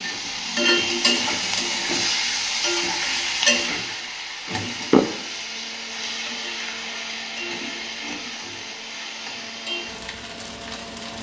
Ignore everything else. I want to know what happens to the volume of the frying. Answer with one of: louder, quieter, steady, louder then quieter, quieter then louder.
quieter.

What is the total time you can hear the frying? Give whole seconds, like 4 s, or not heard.
11 s.